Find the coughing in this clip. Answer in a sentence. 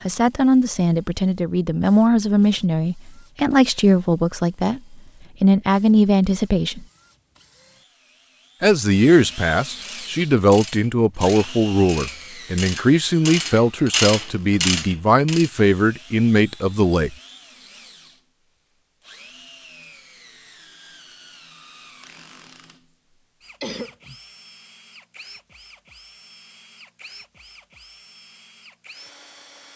You can hear the coughing from 23.6 to 24.1 s.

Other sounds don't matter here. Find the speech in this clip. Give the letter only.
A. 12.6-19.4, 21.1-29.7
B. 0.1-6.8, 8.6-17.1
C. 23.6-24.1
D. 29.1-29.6
B.